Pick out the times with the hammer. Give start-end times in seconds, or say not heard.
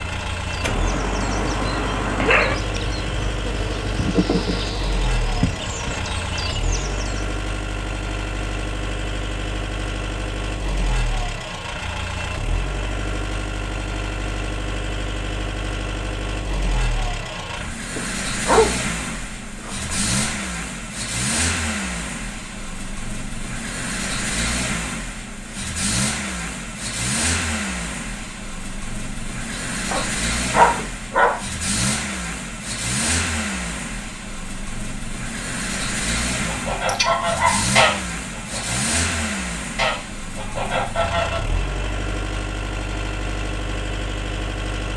not heard.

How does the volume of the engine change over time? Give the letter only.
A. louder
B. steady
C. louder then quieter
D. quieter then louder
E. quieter
B.